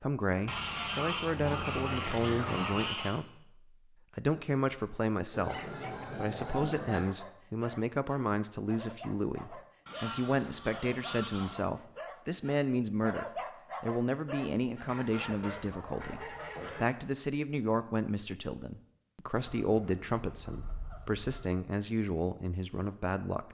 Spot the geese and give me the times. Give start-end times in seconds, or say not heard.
0.5-3.1, 5.3-7.1, 9.8-11.7, 14.8-16.9, 19.4-21.6.